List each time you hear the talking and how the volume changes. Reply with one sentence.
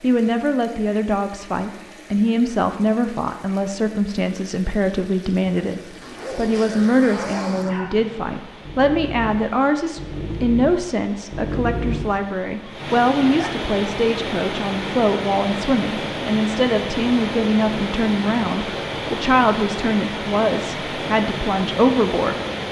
You can hear the talking from 0.0 to 22.4 s, at a steady volume.